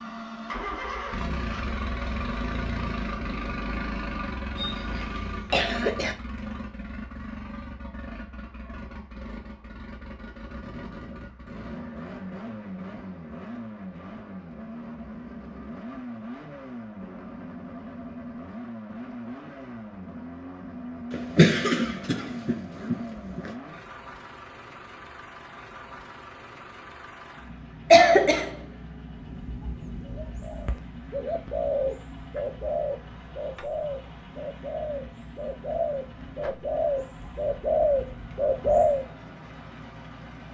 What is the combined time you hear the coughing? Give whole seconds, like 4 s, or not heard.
5 s.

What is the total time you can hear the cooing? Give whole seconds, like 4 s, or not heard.
10 s.